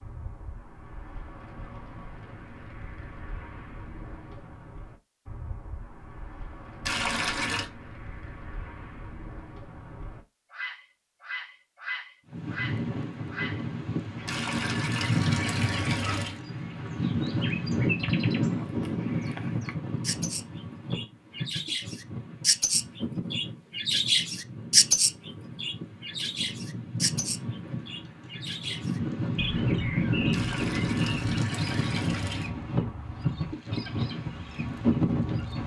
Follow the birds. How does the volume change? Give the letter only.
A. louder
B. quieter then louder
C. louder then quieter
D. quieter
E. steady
C.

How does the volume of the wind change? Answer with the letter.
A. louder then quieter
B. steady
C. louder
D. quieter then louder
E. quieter
D.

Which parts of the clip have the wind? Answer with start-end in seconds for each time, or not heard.
12.3-35.6.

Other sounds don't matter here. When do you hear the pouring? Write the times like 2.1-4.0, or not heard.
6.8-7.7, 14.2-16.4, 30.3-32.5.